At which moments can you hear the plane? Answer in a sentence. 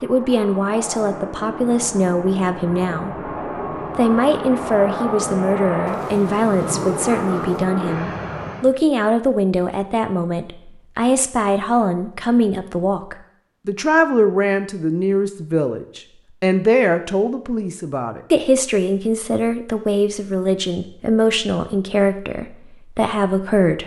The plane can be heard from 0.0 to 8.7 s.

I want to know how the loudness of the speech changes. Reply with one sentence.
The volume of the speech stays about the same.